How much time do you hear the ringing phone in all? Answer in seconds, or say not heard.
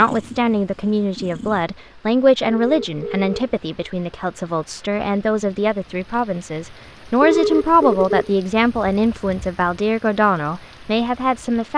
2 s.